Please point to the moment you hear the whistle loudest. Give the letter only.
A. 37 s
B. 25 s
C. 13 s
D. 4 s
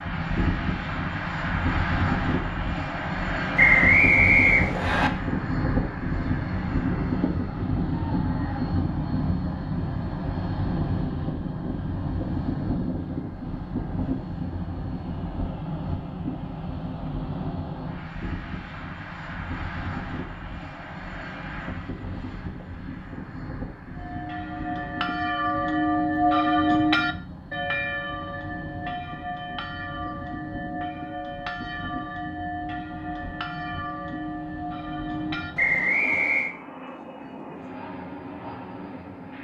D.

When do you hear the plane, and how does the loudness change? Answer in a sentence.
You can hear the plane from 0.0 to 39.3 s, getting quieter.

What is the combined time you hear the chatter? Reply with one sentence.
You can't hear the chatter here.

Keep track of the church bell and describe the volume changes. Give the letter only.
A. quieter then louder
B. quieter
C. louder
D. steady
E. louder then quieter
B.